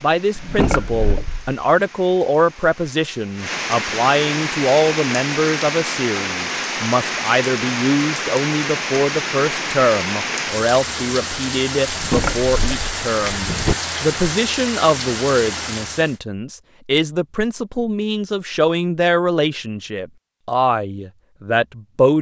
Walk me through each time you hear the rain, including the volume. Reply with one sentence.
The rain can be heard from 0.0 to 16.2 s, getting louder.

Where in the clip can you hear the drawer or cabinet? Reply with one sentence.
The drawer or cabinet can be heard from 0.3 to 1.6 s and from 11.8 to 13.8 s.